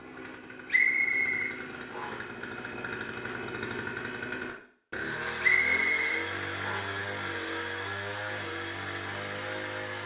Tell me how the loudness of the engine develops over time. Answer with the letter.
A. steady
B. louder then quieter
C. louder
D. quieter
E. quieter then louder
C.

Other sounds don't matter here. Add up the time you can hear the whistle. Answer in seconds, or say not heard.
3 s.